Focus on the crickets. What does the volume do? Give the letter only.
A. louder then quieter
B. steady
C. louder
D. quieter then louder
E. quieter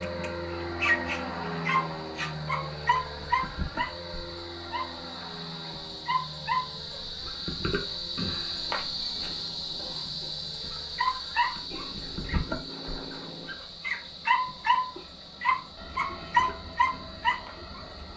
A.